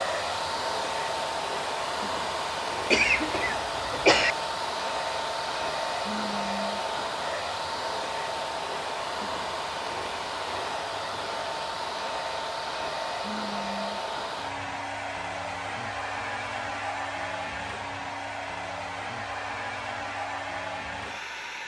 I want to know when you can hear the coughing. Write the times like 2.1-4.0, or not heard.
2.9-4.3.